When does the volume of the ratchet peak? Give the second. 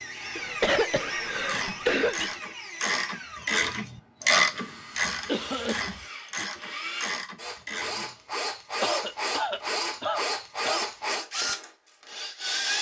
4 s.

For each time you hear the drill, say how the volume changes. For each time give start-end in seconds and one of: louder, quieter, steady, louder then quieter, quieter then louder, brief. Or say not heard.
0.0-12.7 quieter then louder.